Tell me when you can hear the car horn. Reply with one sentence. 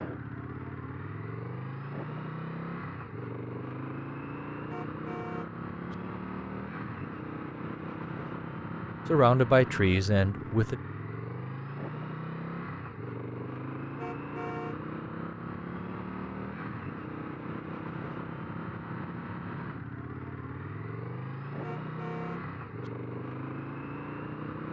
The car horn can be heard from 4.7 to 6.0 s, from 13.9 to 14.8 s and from 21.6 to 22.9 s.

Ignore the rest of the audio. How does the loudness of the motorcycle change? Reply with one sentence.
The loudness of the motorcycle stays about the same.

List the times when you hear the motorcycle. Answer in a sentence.
The motorcycle can be heard from 0.0 to 24.6 s.